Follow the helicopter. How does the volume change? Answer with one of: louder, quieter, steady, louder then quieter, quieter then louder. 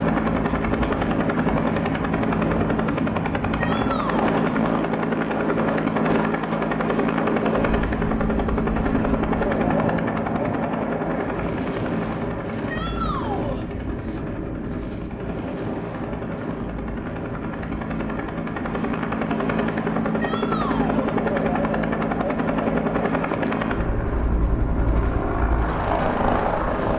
quieter then louder.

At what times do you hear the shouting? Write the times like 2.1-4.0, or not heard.
3.5-4.4, 12.7-13.7, 20.2-21.1.